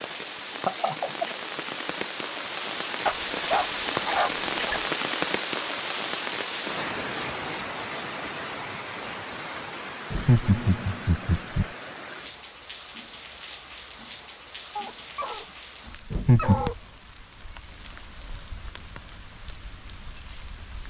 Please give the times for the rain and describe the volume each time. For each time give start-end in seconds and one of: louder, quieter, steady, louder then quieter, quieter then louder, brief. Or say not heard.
0.0-20.8 quieter.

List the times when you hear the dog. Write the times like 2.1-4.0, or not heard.
3.0-4.8, 14.8-16.8.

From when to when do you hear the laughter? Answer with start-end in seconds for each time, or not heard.
0.7-1.4, 10.1-11.7, 16.1-16.7.